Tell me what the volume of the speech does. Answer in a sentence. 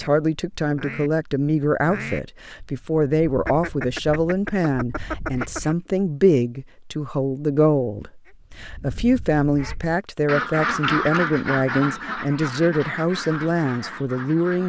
The volume of the speech stays about the same.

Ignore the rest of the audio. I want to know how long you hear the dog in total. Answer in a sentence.
You can't hear the dog here.